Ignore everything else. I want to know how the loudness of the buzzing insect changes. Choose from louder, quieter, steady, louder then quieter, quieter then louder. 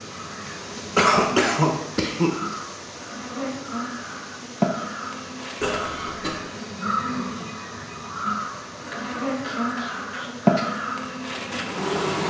louder.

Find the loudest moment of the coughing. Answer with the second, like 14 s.
1 s.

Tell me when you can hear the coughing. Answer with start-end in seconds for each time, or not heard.
0.9-2.5, 5.6-6.4, 8.9-10.7.